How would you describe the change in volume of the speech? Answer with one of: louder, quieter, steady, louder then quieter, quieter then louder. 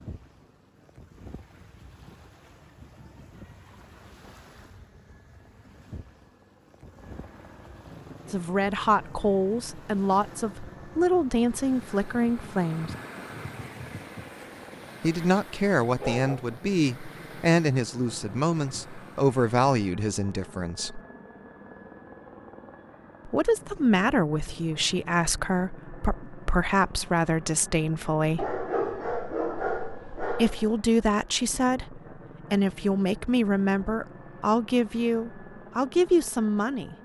steady.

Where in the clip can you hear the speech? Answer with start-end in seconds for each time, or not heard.
8.3-12.9, 15.0-21.0, 23.2-28.5, 30.4-37.0.